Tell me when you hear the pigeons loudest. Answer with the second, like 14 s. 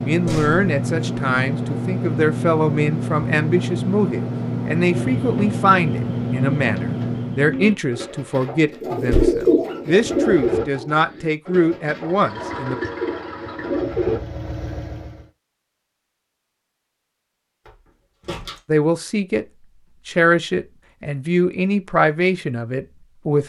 9 s.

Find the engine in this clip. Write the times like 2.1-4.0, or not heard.
0.0-7.6, 11.9-15.3.